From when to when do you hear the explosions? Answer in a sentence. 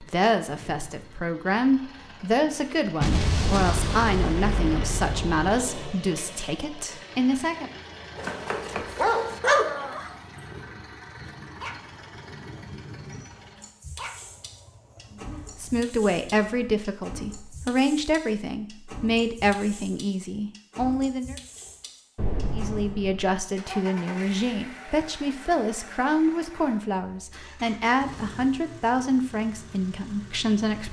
You can hear the explosions from 3.0 to 5.5 s and from 22.1 to 23.4 s.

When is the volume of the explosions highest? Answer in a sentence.
The volume of the explosions peaks at 3 seconds.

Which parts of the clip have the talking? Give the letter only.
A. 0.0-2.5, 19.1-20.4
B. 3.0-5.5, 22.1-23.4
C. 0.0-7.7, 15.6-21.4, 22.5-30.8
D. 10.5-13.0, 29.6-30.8
C.